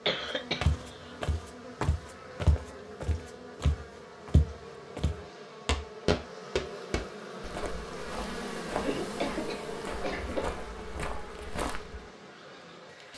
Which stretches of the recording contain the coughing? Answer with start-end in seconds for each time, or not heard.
0.1-1.1, 8.8-10.6.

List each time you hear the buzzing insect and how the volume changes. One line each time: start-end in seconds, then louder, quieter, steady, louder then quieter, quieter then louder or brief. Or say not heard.
0.0-13.1 louder then quieter.